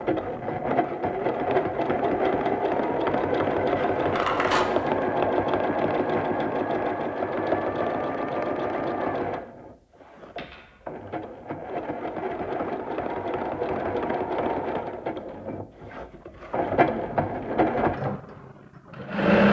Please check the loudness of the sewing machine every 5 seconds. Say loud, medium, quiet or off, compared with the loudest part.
loud, loud, medium, loud.